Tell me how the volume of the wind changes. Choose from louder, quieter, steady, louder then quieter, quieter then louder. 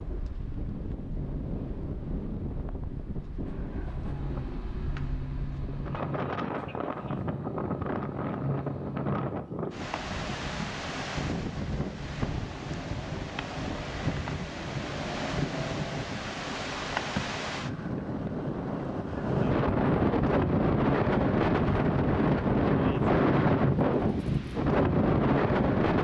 louder.